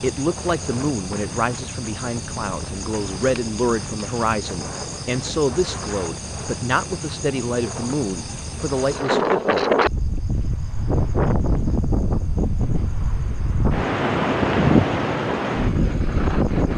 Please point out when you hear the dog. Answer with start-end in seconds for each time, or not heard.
not heard.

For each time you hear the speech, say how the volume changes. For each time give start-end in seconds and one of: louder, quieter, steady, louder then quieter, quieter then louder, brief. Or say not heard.
0.0-9.7 steady.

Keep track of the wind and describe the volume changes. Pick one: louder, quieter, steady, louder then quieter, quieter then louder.
louder.